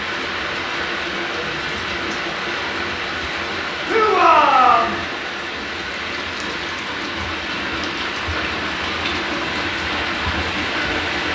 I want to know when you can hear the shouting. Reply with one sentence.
The shouting can be heard from 3.9 to 5.0 s.